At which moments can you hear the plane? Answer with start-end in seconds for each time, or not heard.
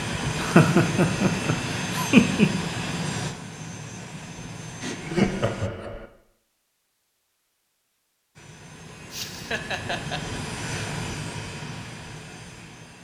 0.0-5.7, 8.3-12.9.